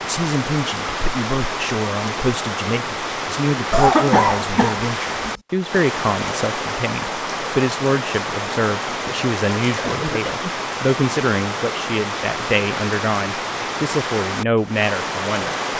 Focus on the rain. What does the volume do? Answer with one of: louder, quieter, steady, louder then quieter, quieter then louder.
steady.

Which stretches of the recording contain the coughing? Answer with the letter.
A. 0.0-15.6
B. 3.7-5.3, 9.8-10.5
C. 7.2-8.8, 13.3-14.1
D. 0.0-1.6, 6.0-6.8
B.